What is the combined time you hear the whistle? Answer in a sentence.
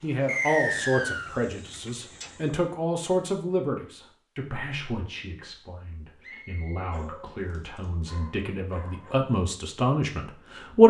You can hear the whistle for 3 seconds altogether.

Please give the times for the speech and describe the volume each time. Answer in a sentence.
The speech can be heard from 0.0 to 10.8 s, getting quieter then louder.